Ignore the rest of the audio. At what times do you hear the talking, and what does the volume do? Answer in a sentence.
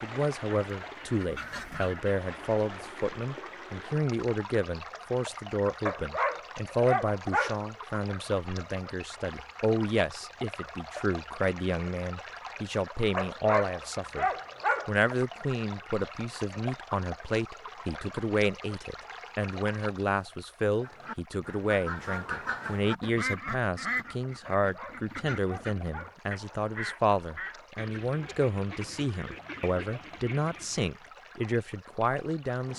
You can hear the talking from 0.0 to 14.2 s, at a steady volume; and from 14.8 to 32.7 s, at a steady volume.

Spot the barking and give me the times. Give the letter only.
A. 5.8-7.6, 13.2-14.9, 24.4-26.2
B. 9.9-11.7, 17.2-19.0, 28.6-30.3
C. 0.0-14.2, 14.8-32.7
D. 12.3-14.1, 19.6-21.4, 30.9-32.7
A.